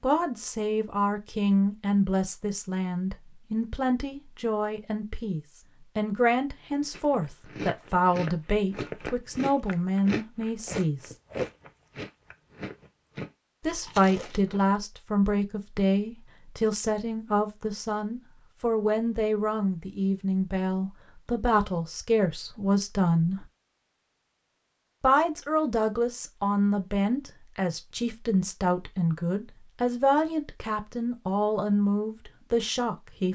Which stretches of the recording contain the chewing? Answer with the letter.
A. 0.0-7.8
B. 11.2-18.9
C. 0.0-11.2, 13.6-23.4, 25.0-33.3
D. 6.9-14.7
D.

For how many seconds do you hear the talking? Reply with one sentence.
The talking can be heard for 29 seconds in total.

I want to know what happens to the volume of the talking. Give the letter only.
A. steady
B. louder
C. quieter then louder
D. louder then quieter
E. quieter
A.